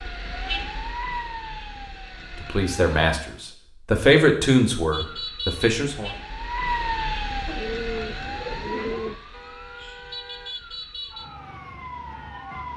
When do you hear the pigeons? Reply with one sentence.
The pigeons can be heard from 7.5 to 9.2 s.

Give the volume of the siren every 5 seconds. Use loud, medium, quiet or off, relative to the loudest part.
loud, loud, medium.